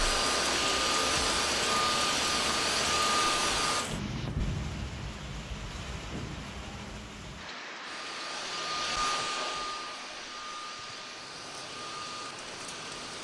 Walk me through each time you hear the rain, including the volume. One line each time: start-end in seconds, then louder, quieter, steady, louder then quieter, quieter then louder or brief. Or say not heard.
0.0-13.1 quieter.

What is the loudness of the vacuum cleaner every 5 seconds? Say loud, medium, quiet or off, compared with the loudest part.
loud, medium, quiet.